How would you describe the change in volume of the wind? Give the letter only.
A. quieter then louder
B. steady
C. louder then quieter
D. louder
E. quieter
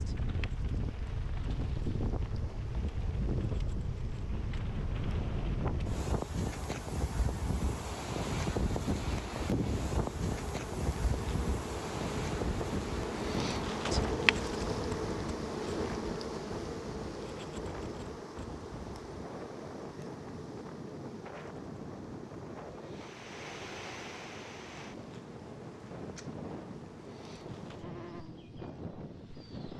E.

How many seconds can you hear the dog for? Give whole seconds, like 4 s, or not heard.
not heard.